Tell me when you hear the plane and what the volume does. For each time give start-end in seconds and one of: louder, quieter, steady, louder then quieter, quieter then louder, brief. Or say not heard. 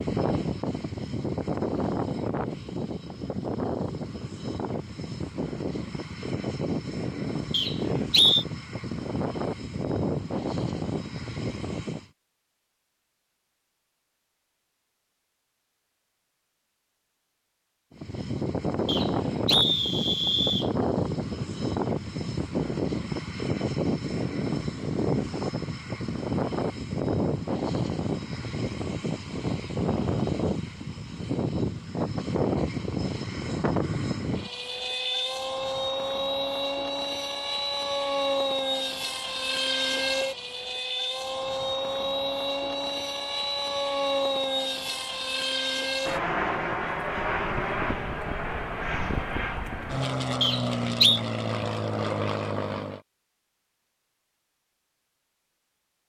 0.0-12.1 steady
17.9-53.0 steady.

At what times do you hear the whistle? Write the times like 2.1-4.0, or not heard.
7.5-8.4, 18.9-20.7, 50.4-51.2.